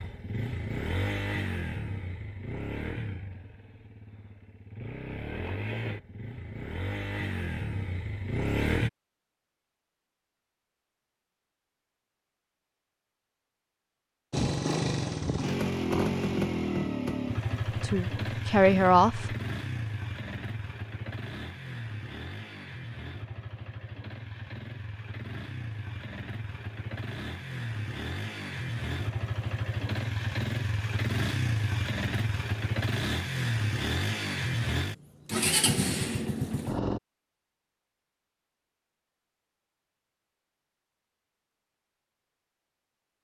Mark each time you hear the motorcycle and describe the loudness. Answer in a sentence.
You can hear the motorcycle from 0.0 to 8.9 s, getting quieter then louder; and from 14.3 to 37.0 s, getting quieter then louder.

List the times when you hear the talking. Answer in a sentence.
You can hear the talking from 17.5 to 19.4 s.